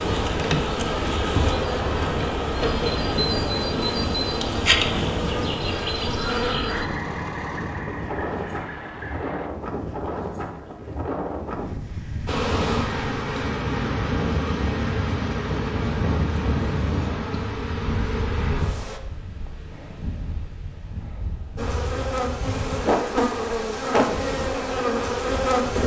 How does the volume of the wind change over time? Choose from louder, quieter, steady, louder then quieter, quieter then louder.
quieter.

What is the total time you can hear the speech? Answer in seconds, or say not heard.
not heard.